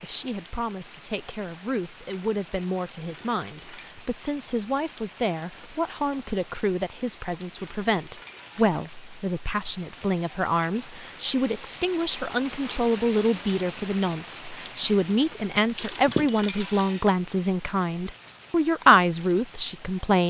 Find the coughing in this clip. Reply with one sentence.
The coughing can't be heard in this clip.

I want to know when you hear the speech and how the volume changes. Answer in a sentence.
You can hear the speech from 0.0 to 20.2 s, getting louder.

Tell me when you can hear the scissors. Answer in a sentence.
You can hear the scissors from 14.6 to 16.4 s.